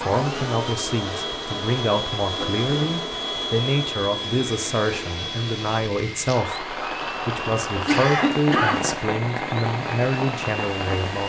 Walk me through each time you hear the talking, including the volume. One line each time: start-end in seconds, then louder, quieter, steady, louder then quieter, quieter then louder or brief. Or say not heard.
0.0-11.2 steady.